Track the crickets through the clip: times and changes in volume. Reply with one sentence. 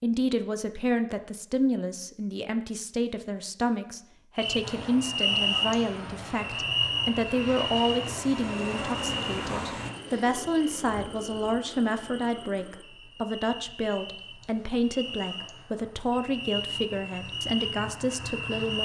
You can hear the crickets from 4.3 to 18.8 s, getting quieter then louder.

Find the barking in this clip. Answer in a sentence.
You can't hear the barking here.